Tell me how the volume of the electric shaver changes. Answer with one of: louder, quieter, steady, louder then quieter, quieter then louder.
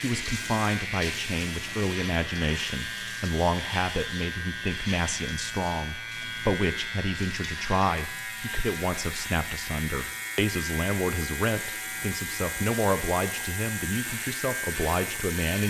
steady.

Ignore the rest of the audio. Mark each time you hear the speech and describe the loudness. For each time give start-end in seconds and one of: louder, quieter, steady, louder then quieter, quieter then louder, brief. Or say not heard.
0.0-15.6 steady.